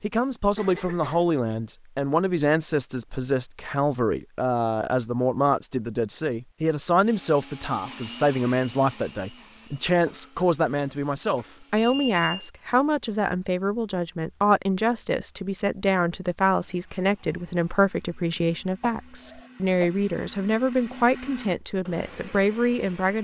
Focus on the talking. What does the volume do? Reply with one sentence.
The loudness of the talking stays about the same.